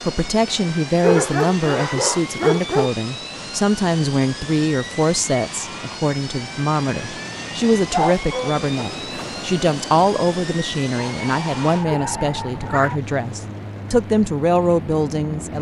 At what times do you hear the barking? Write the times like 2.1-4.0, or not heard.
1.0-2.9, 7.9-8.6, 11.0-13.0.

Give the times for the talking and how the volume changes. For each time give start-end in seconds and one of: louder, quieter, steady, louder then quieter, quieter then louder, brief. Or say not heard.
0.1-15.5 steady.